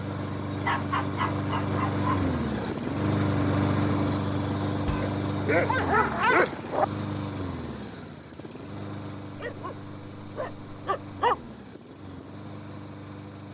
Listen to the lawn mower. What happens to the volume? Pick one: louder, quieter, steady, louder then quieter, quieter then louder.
quieter.